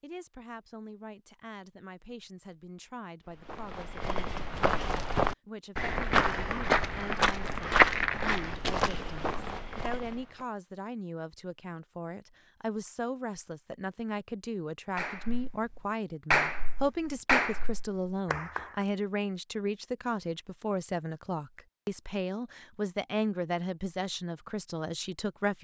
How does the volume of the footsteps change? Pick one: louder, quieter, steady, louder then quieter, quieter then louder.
louder then quieter.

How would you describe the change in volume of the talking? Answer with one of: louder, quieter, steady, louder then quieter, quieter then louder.
louder.